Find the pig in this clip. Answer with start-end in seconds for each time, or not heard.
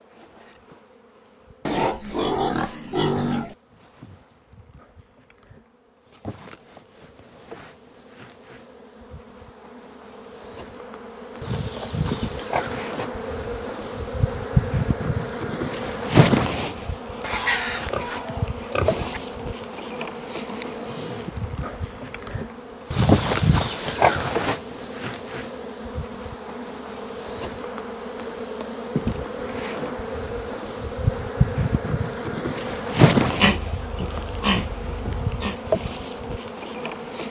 1.6-3.5, 11.4-13.1, 17.2-19.2, 22.9-24.6, 33.4-35.5.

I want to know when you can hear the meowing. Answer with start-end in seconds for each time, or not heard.
not heard.